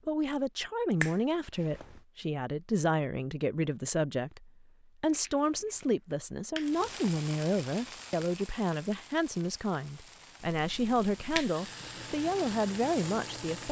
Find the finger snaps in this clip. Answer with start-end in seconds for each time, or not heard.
1.0-2.0, 6.1-6.7, 10.6-11.5.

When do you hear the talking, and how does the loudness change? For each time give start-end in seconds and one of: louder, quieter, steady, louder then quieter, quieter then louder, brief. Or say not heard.
0.1-13.6 steady.